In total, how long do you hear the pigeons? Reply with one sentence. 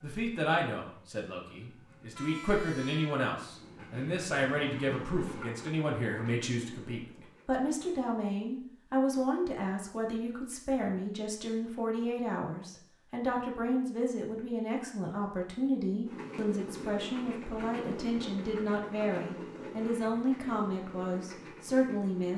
You can't hear the pigeons here.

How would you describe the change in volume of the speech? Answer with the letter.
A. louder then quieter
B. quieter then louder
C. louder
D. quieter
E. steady
E.